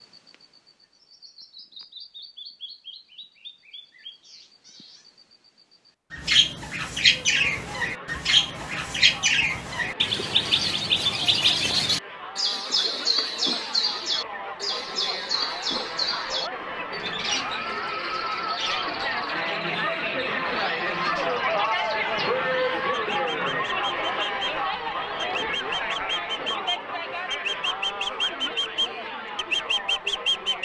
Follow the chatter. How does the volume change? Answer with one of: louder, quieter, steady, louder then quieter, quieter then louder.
louder then quieter.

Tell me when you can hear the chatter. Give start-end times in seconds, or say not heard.
7.0-30.6.